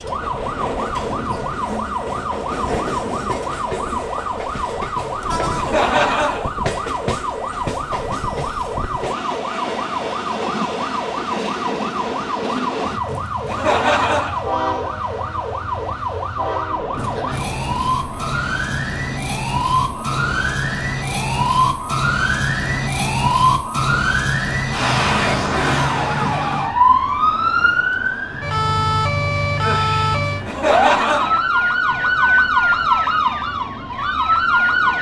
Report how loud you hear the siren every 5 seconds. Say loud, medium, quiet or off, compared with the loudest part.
medium, medium, medium, medium, loud, loud, loud.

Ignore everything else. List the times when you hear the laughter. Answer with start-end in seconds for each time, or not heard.
5.5-6.5, 13.4-14.4, 30.4-31.4.